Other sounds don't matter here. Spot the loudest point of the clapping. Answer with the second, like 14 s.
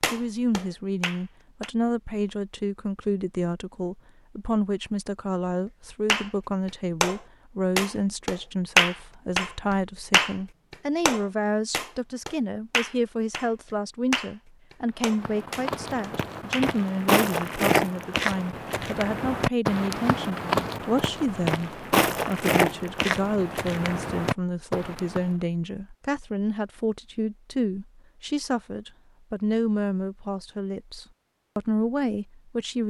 9 s.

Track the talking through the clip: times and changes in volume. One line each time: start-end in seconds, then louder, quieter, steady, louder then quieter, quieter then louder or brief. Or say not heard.
0.1-32.8 steady.